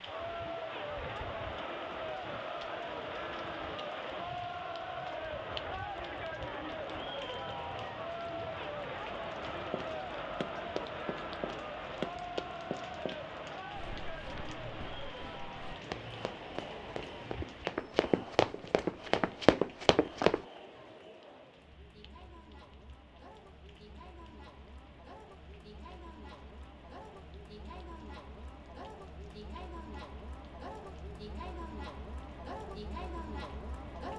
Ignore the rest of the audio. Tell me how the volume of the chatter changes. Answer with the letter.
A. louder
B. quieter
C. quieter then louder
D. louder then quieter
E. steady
C.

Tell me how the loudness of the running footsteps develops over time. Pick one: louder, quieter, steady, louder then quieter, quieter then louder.
quieter then louder.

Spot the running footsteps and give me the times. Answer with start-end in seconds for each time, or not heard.
9.7-20.4.